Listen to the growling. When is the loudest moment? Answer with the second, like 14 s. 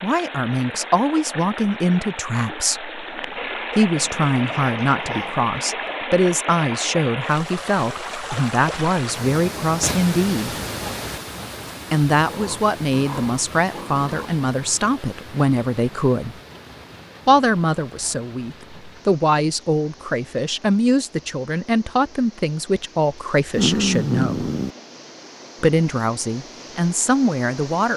24 s.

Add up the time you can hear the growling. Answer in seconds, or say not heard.
6 s.